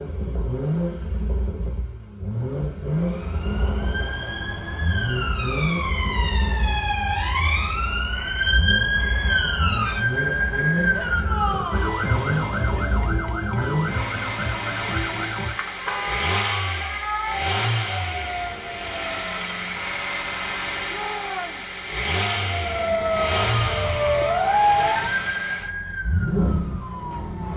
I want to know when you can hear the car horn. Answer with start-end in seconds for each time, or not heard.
15.8-16.7.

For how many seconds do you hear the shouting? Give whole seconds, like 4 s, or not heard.
2 s.